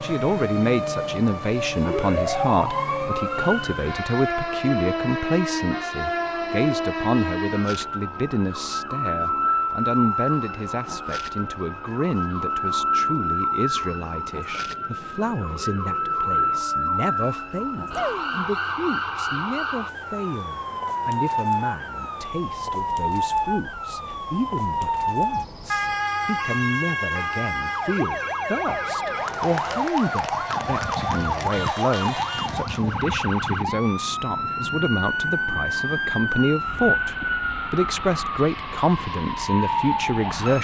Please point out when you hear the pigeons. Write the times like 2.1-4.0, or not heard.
not heard.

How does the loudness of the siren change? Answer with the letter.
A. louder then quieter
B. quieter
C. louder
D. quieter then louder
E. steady
E.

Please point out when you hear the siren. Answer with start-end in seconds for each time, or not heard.
0.0-40.5.